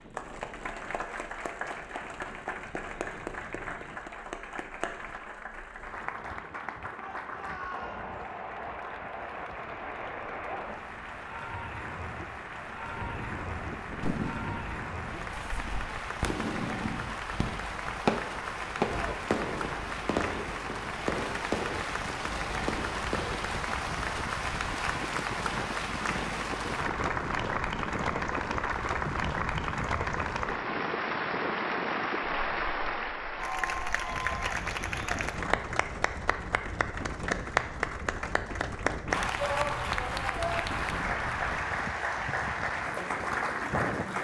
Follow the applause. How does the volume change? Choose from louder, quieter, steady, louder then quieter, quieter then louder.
louder.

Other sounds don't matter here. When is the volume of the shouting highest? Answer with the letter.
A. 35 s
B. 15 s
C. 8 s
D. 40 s
D.